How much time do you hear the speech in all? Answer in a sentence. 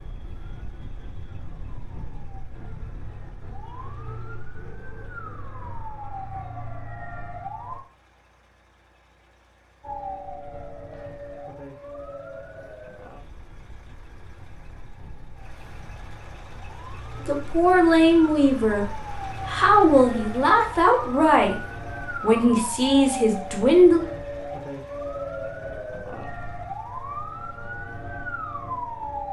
You can hear the speech for 7 seconds altogether.